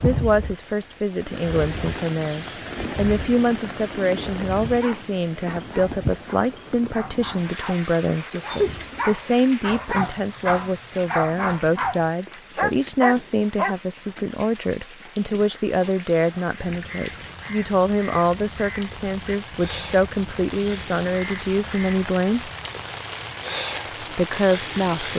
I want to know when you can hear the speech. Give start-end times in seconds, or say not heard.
0.0-22.5, 24.0-25.1.